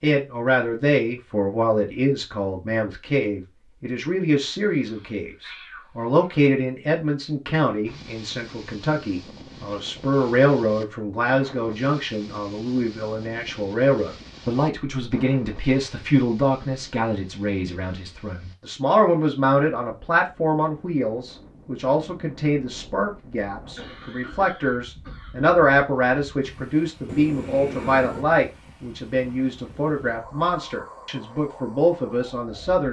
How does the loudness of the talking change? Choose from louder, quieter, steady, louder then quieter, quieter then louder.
steady.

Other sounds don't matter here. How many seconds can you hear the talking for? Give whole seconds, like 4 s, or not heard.
33 s.